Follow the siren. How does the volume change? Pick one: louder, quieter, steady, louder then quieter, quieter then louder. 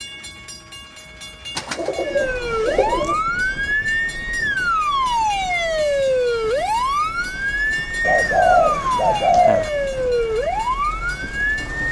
steady.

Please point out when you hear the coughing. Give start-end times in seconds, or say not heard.
not heard.